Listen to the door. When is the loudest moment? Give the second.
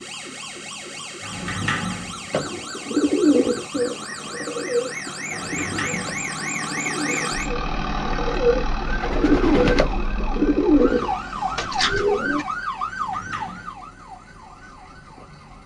2 s.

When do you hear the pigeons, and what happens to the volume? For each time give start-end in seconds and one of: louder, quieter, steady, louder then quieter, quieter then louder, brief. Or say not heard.
2.3-12.4 quieter then louder.